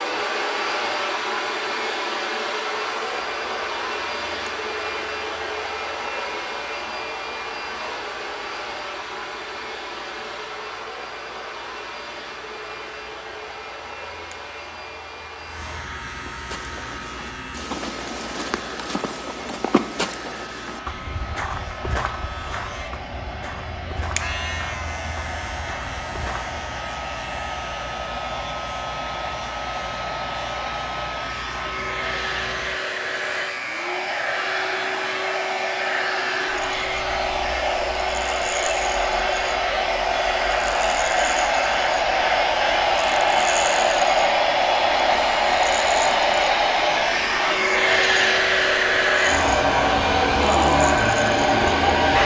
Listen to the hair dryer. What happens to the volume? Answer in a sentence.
The loudness of the hair dryer goes down, then up.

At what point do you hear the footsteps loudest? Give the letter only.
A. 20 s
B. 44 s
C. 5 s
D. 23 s
A.